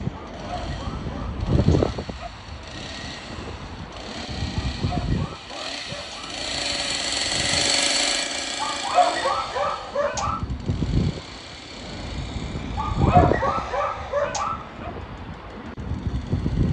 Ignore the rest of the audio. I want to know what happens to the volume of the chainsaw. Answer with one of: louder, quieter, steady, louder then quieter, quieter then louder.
louder then quieter.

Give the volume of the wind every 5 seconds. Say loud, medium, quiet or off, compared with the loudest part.
loud, medium, loud, loud.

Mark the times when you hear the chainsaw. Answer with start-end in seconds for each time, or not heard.
0.0-16.6.